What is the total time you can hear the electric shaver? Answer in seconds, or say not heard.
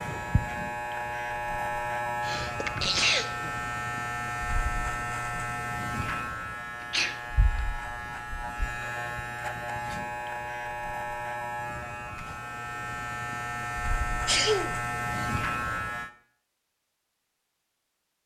16 s.